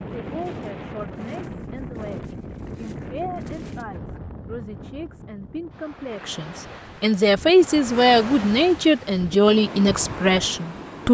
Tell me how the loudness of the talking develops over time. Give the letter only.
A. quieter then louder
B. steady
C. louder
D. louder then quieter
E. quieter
C.